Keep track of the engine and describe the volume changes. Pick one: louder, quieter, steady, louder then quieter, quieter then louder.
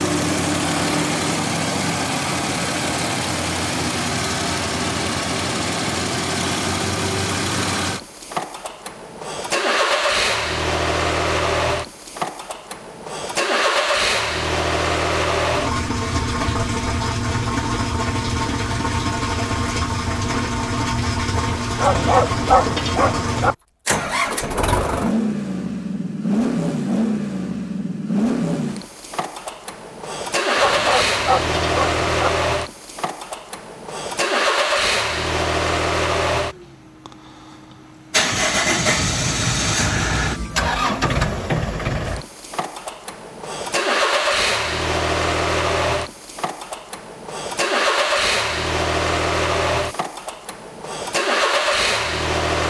steady.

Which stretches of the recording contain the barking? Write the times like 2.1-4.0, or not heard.
21.8-23.6, 30.6-32.3.